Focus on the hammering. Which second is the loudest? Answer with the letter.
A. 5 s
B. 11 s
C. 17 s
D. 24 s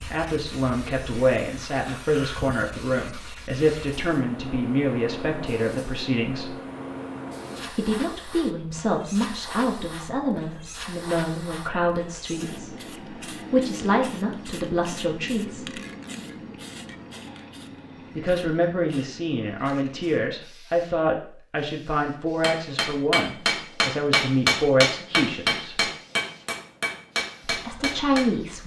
D.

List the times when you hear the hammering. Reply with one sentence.
You can hear the hammering from 22.4 to 28.4 s.